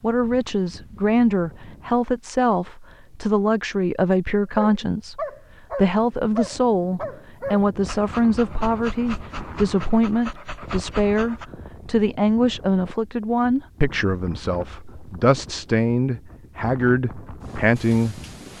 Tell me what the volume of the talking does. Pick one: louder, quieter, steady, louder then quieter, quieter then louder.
steady.